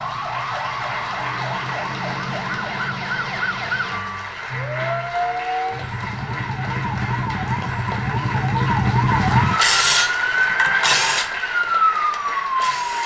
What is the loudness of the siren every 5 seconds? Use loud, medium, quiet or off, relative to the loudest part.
medium, loud, loud.